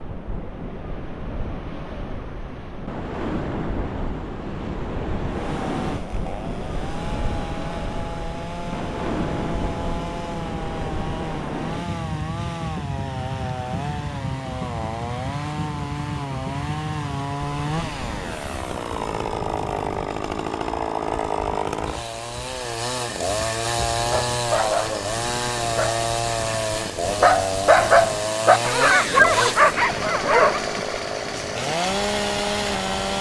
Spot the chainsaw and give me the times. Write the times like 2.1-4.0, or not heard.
5.2-33.1.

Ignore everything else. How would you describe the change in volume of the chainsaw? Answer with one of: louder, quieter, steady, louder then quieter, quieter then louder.
louder.